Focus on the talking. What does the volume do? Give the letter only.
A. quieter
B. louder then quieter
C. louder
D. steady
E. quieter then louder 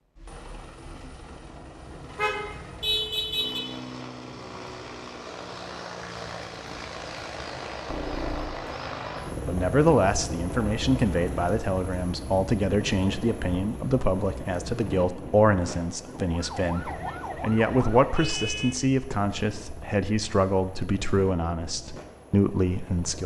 D.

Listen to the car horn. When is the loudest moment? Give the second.
3 s.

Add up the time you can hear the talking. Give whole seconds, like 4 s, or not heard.
14 s.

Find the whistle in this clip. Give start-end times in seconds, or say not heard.
not heard.